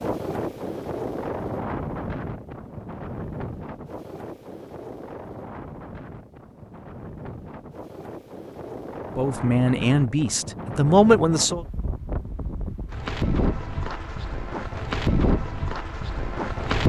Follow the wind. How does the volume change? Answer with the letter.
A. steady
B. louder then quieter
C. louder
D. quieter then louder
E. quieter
D.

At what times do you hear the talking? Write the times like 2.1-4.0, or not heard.
9.2-11.6.